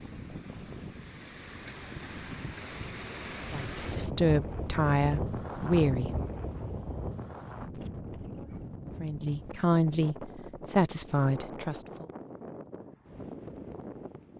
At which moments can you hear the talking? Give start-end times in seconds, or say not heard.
3.5-6.1, 9.0-12.1.